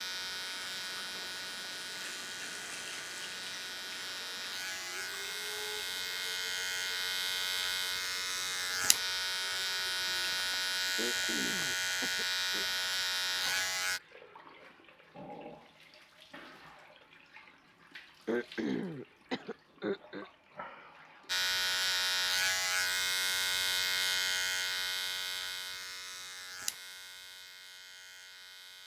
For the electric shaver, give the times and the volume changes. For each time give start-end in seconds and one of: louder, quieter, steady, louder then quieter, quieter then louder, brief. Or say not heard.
0.0-14.0 louder
21.2-28.8 quieter.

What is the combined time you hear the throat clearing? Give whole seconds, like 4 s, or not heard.
4 s.